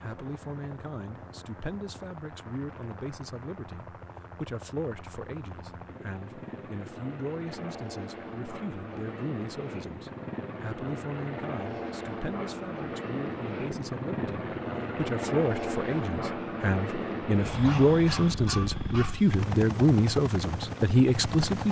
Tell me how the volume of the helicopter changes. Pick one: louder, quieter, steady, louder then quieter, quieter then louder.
louder.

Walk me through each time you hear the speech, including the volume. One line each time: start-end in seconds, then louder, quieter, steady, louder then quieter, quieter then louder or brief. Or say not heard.
0.0-21.6 louder.